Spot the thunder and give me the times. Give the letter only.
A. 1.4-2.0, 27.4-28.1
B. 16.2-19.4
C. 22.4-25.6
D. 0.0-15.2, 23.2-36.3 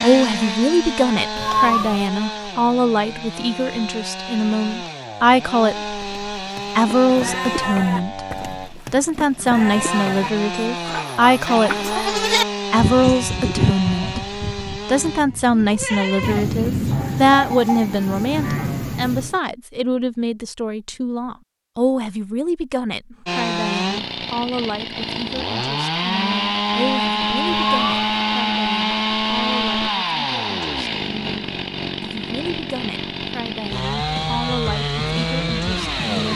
B.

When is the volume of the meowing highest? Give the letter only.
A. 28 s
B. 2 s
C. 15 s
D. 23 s
B.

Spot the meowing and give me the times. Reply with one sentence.
You can hear the meowing from 1.4 to 2.0 s and from 27.4 to 28.1 s.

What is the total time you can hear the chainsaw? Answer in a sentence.
You can hear the chainsaw for 28 seconds altogether.